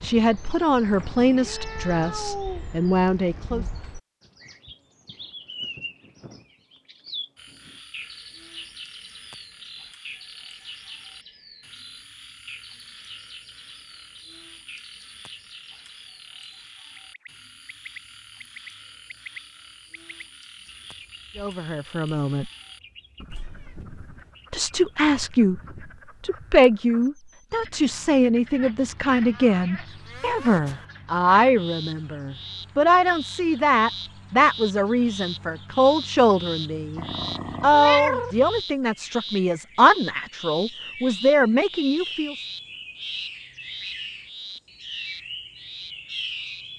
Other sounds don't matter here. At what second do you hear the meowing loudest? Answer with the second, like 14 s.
38 s.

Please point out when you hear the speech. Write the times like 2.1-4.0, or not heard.
0.0-3.6, 21.4-22.5, 24.5-25.6, 26.2-42.4.